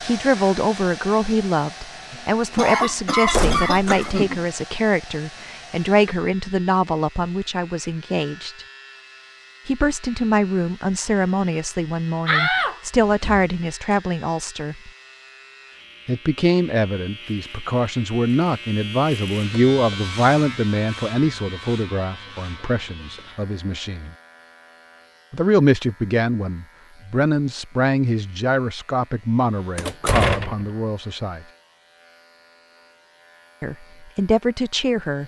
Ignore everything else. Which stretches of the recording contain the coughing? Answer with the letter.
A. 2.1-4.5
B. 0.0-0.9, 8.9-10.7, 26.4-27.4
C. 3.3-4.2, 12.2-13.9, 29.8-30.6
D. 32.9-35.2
A.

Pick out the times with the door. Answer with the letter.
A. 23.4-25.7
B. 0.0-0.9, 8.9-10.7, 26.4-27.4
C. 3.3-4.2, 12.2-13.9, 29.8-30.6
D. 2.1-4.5
C.